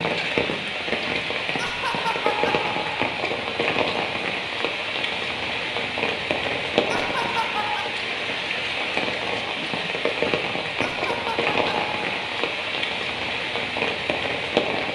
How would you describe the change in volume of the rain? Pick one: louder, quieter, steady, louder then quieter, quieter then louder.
steady.